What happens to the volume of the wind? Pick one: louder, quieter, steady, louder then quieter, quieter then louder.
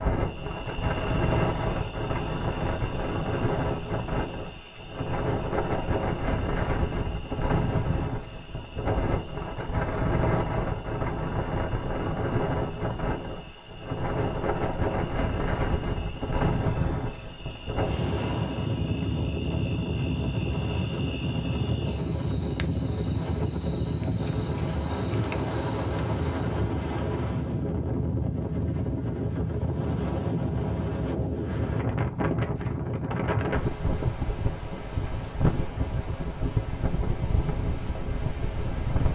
steady.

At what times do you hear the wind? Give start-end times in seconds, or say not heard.
0.0-39.0.